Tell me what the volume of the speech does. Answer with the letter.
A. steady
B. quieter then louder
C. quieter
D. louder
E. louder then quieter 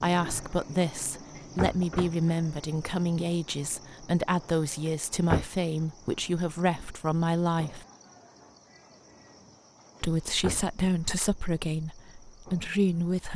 A.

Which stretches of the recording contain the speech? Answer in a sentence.
The speech can be heard from 0.0 to 7.8 s and from 10.0 to 13.3 s.